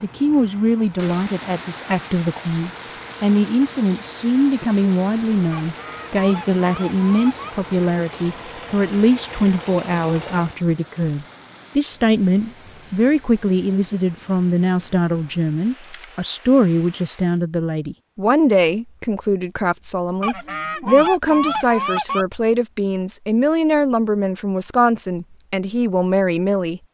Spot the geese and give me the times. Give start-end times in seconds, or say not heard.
5.5-7.5, 20.2-22.2.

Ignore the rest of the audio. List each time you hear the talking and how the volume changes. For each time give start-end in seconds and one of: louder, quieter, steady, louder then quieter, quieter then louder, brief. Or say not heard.
0.0-26.8 steady.